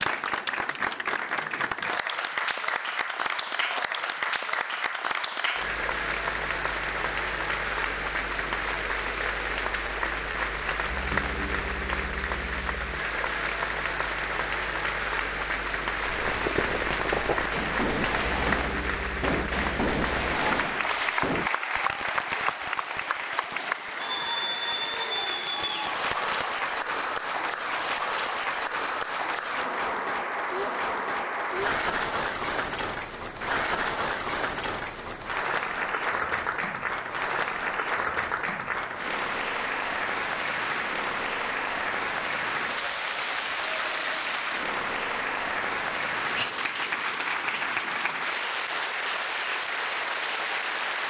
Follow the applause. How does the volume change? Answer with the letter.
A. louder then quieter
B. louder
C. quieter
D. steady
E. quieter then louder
D.